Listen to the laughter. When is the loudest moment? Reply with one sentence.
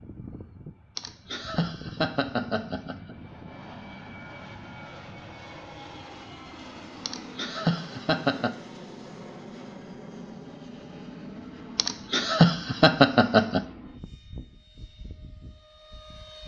The loudest moment of the laughter is at 13 seconds.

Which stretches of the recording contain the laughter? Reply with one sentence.
You can hear the laughter from 0.9 to 3.1 s, from 7.0 to 8.6 s and from 11.8 to 13.7 s.